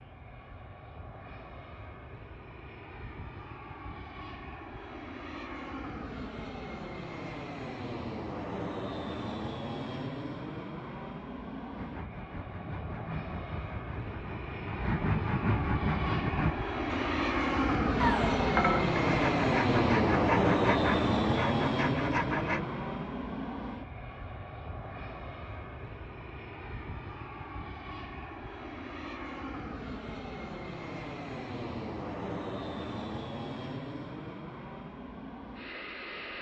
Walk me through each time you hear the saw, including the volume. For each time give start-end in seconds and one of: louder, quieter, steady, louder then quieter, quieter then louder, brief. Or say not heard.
11.8-22.6 louder.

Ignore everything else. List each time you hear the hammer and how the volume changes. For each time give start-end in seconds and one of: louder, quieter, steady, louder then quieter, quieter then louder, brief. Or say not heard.
not heard.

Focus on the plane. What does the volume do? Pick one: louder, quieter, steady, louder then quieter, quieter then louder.
louder then quieter.